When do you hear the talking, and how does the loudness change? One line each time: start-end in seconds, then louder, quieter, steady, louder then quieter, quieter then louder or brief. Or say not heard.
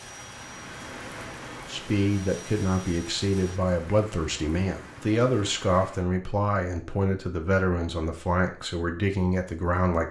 1.7-10.0 steady.